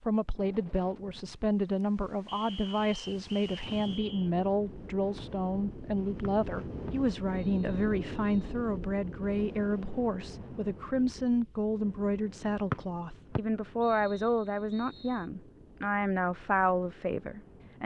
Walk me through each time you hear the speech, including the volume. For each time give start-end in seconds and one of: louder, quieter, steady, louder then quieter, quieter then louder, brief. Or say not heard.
0.0-17.8 steady.